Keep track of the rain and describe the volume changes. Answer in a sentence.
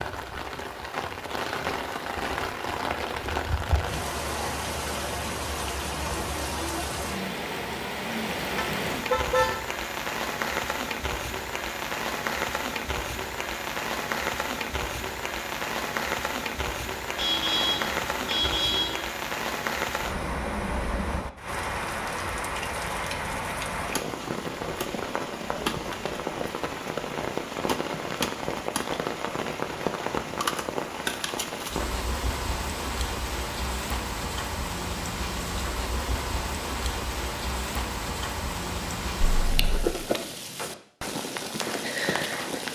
The volume of the rain stays about the same.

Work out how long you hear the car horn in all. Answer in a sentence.
The car horn can be heard for 4 seconds in total.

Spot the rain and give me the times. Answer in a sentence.
You can hear the rain from 0.0 to 42.7 s.